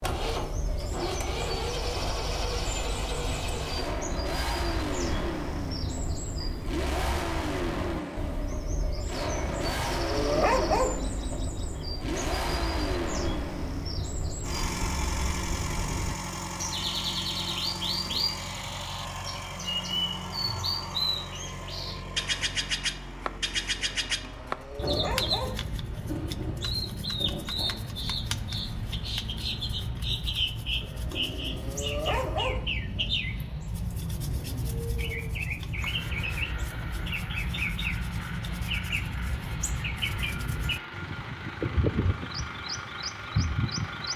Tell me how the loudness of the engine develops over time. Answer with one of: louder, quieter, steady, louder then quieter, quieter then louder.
quieter.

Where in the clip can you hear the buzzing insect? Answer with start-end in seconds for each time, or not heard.
not heard.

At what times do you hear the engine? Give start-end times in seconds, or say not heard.
0.0-44.1.